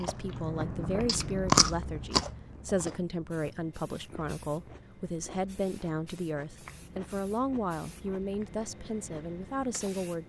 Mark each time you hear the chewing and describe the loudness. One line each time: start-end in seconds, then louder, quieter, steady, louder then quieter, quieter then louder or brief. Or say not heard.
0.0-10.0 quieter.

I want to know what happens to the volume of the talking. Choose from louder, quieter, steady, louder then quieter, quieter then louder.
steady.